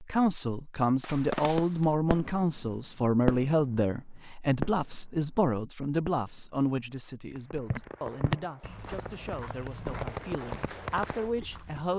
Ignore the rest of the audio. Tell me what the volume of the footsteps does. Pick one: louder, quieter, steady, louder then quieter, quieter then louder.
quieter.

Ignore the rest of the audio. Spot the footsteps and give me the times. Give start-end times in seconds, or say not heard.
7.7-11.9.